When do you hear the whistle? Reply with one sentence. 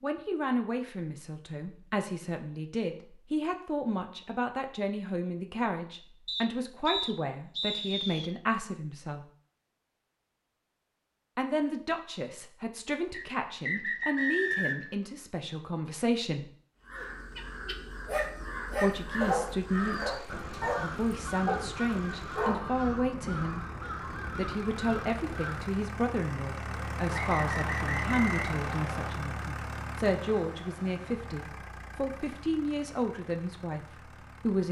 You can hear the whistle from 6.2 to 8.3 s, from 13.1 to 14.9 s and from 27.1 to 29.1 s.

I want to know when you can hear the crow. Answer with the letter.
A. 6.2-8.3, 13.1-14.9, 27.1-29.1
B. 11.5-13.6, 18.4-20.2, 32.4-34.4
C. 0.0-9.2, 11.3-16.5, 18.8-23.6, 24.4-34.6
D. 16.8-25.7
D.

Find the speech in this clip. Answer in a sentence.
You can hear the speech from 0.0 to 9.2 s, from 11.3 to 16.5 s, from 18.8 to 23.6 s and from 24.4 to 34.6 s.